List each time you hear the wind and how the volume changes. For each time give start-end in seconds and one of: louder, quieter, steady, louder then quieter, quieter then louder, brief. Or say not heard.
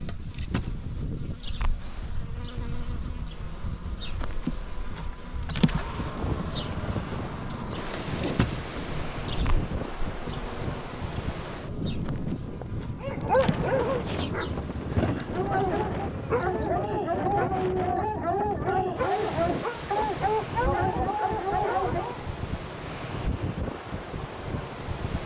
0.0-25.2 louder.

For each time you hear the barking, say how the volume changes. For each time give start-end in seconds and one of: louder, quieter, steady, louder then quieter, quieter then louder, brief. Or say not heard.
13.0-22.2 steady.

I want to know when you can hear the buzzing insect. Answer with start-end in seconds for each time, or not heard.
0.0-16.7.